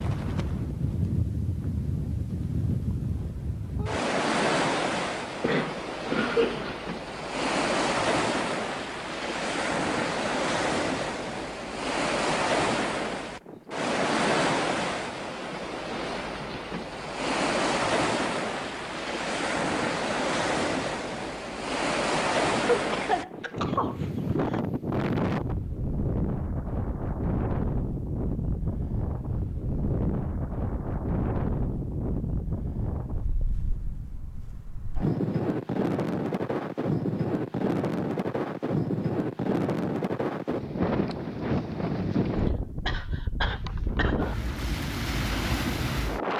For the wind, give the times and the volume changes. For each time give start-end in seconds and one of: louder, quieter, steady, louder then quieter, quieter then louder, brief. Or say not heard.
0.0-46.3 steady.